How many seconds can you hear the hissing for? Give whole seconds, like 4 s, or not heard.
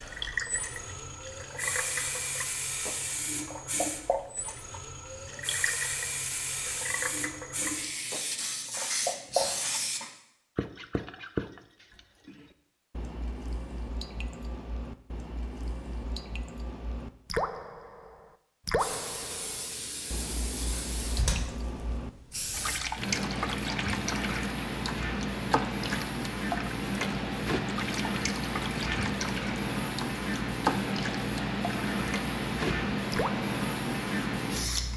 26 s.